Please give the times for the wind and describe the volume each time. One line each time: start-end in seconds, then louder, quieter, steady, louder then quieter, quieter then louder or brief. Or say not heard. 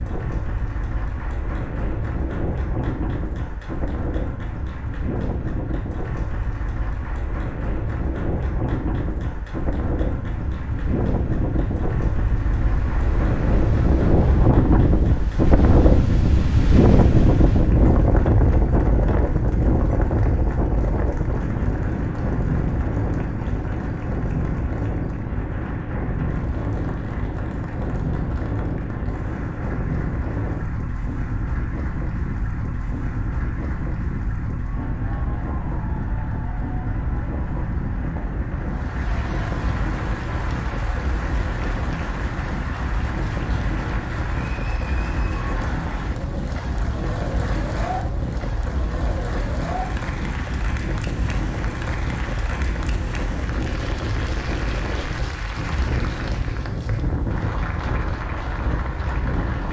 0.0-59.6 louder then quieter.